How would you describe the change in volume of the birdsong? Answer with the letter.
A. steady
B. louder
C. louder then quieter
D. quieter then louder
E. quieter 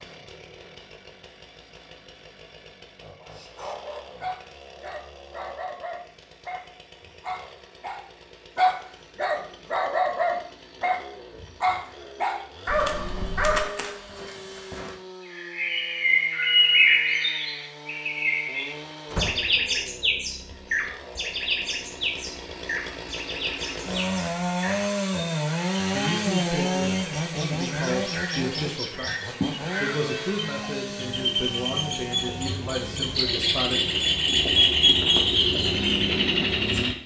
D.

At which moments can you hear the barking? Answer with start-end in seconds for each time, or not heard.
3.2-14.9.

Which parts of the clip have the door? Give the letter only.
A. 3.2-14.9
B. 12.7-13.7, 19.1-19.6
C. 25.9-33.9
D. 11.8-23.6
B.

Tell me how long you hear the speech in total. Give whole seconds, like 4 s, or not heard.
8 s.